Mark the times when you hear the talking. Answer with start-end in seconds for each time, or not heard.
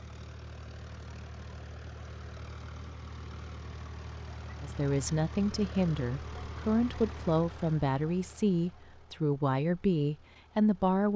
4.6-11.1.